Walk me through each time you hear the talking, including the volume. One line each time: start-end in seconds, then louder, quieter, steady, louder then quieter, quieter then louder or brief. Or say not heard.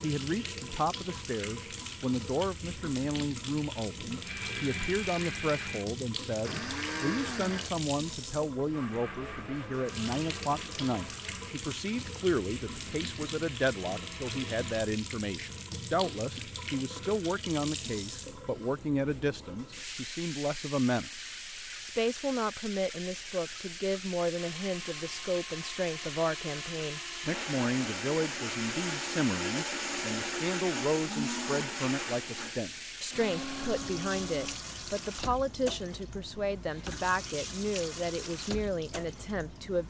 0.0-39.8 steady.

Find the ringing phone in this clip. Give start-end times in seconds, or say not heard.
not heard.